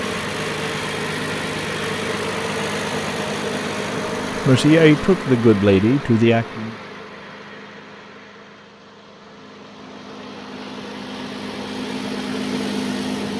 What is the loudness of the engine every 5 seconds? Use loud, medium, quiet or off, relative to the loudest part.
loud, medium, loud.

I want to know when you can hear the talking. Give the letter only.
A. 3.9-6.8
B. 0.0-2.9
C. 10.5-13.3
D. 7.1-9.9
A.